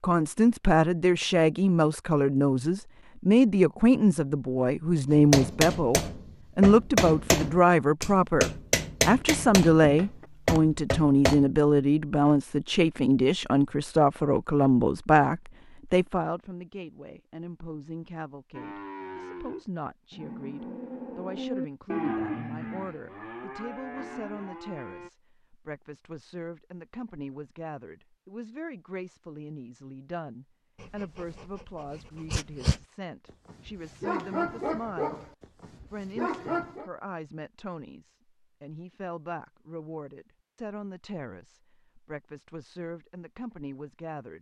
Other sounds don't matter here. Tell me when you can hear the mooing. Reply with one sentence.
The mooing can be heard from 18.5 to 25.1 s.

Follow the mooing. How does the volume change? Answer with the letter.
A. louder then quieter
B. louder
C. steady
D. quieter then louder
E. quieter
A.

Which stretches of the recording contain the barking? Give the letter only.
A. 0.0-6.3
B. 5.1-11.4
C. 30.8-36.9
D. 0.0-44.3
C.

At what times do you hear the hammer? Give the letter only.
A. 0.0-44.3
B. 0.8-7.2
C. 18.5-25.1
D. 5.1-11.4
D.